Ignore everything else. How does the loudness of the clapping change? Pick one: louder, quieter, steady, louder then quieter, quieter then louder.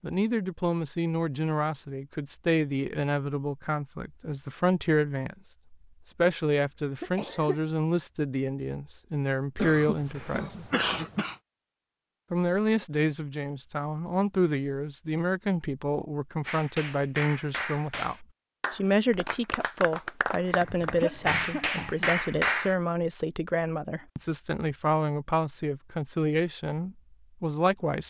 louder.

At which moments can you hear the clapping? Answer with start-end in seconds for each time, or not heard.
16.4-22.8.